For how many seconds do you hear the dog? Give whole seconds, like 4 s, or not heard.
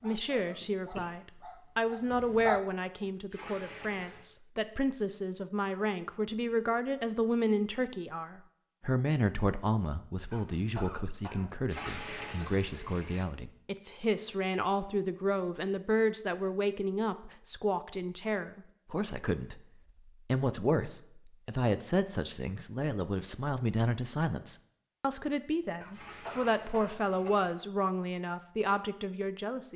3 s.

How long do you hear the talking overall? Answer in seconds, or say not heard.
29 s.